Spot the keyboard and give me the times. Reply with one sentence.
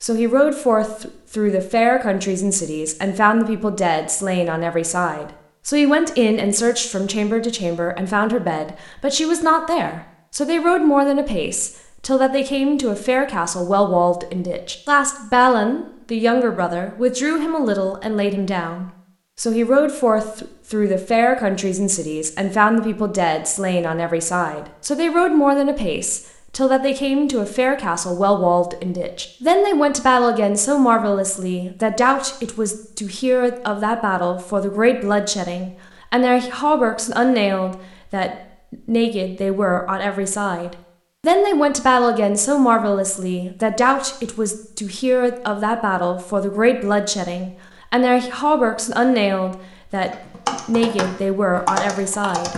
The keyboard can be heard from 50.0 to 52.5 s.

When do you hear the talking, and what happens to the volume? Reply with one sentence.
You can hear the talking from 0.0 to 52.5 s, at a steady volume.